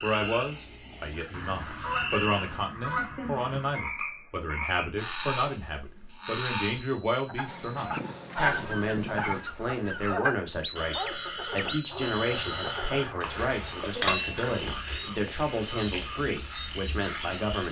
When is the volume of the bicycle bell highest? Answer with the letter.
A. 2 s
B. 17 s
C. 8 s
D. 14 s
D.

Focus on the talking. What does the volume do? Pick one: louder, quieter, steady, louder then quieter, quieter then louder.
steady.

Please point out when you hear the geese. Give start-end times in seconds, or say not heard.
1.3-3.8, 8.4-10.2, 11.9-14.0.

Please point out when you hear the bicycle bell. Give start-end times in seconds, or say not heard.
1.1-2.7, 6.8-7.9, 13.9-14.8.